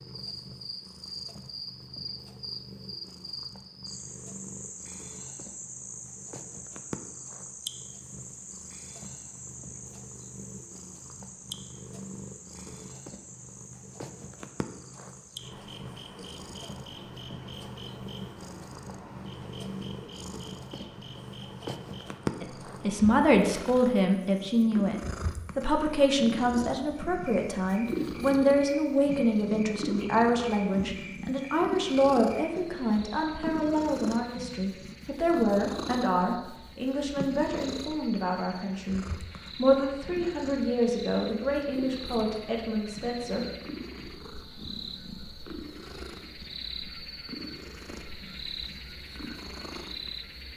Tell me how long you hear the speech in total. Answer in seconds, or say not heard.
21 s.